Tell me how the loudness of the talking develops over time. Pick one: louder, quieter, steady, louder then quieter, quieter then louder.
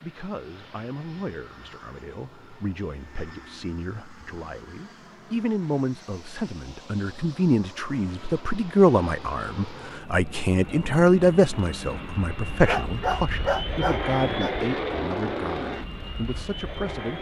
louder then quieter.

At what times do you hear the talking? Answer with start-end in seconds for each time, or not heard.
0.0-17.1.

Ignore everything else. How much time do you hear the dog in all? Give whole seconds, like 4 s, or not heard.
2 s.